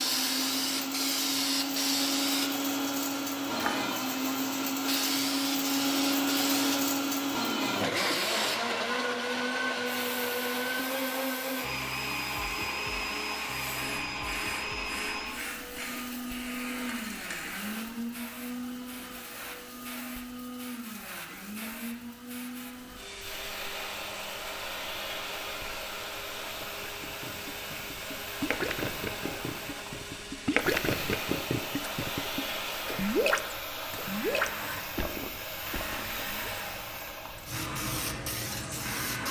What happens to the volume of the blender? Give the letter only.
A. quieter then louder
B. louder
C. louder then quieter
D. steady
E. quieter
E.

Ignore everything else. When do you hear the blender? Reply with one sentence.
You can hear the blender from 0.0 to 39.2 s.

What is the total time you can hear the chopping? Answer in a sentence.
The chopping can't be heard in this clip.